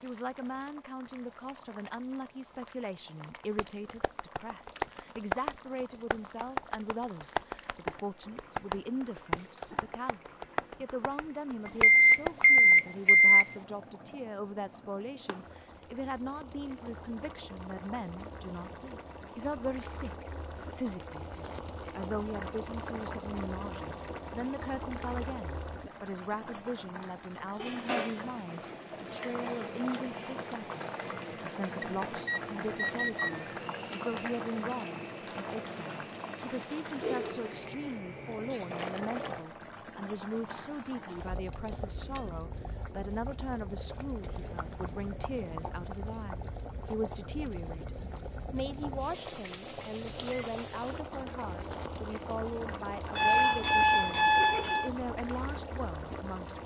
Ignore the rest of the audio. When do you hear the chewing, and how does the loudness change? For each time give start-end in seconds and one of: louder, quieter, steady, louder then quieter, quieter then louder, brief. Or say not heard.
not heard.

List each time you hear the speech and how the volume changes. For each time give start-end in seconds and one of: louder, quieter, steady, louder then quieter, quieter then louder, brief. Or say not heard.
0.0-56.6 steady.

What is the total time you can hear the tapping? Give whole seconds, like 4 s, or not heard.
9 s.